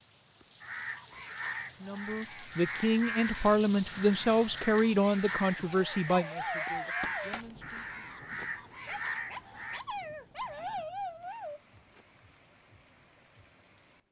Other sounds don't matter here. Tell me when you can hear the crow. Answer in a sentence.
You can hear the crow from 0.6 to 9.8 s.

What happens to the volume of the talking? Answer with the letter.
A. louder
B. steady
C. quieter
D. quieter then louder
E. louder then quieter
C.